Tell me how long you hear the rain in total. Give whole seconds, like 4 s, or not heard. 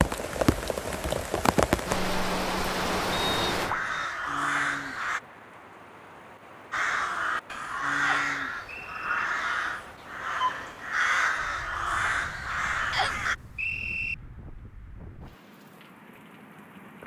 17 s.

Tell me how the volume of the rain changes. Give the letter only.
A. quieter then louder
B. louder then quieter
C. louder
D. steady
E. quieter
E.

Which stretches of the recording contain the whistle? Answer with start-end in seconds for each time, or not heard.
3.1-4.0, 8.0-9.2, 12.9-14.2.